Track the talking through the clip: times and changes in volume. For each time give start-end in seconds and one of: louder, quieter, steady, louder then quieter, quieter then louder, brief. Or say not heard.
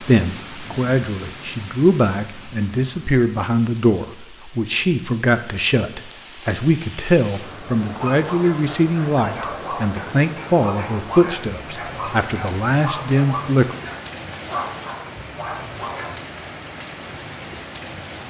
0.0-13.8 steady.